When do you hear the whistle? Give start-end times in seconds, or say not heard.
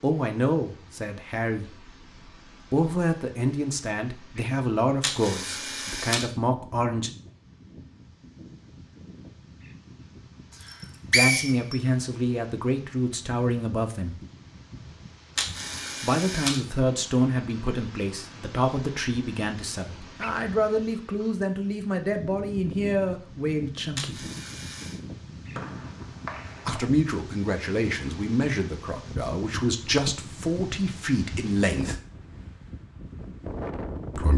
10.6-11.8, 25.6-26.9.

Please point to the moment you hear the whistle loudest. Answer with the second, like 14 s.
11 s.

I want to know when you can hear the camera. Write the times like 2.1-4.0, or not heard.
5.0-6.2, 15.3-16.6, 23.9-25.0.